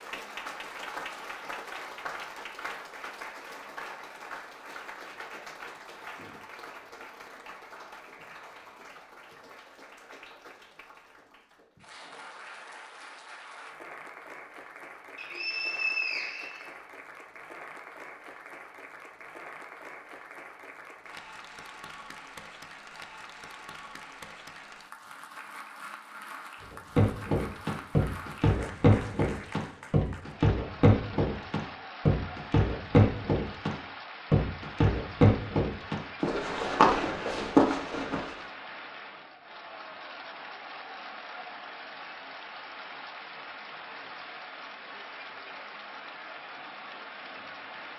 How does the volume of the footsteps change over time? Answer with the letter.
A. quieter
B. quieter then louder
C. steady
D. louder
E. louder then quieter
C.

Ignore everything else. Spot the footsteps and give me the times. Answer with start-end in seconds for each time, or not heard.
26.9-38.4.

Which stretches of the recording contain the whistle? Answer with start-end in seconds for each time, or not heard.
15.2-16.7.